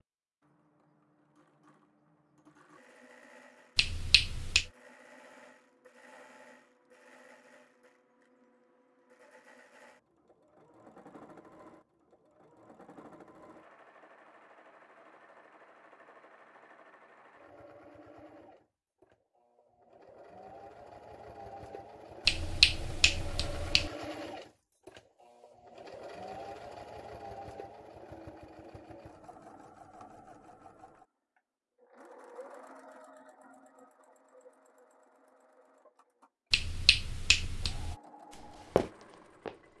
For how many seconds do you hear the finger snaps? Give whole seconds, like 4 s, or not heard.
4 s.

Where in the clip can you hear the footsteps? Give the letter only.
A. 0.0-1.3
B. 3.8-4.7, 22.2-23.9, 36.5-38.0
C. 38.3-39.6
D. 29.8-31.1
C.